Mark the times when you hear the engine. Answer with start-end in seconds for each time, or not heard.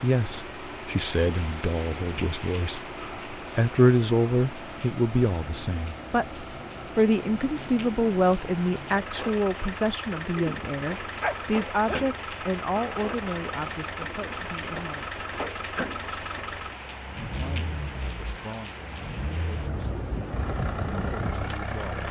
0.0-22.0.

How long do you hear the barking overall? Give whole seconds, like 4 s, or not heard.
2 s.